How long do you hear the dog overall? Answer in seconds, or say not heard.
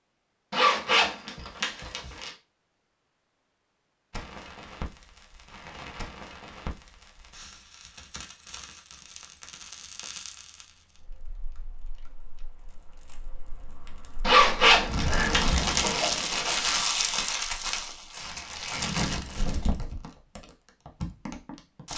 not heard.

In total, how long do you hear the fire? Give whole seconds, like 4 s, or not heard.
18 s.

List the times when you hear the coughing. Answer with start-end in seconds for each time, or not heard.
14.7-16.2.